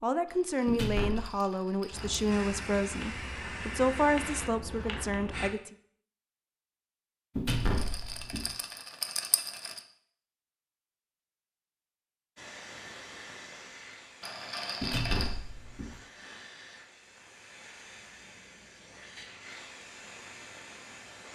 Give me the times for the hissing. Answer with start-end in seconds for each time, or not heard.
1.9-5.5, 12.3-21.2.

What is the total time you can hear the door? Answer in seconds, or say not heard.
3 s.